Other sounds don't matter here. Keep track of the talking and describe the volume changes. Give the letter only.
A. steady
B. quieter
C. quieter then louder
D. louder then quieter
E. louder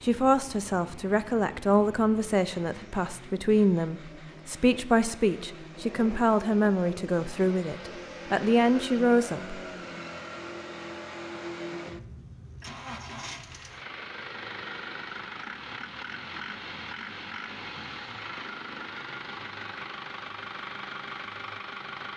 A.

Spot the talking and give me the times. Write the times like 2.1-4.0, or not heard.
0.0-9.6.